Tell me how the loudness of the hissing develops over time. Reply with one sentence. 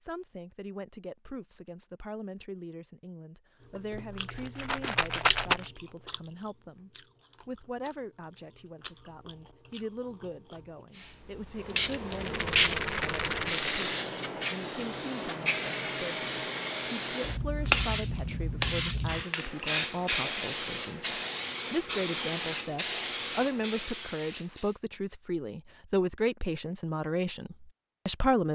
The loudness of the hissing stays about the same.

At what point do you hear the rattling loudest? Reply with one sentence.
The volume of the rattling peaks at 5 seconds.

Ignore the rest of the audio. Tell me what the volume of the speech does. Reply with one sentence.
The volume of the speech goes up.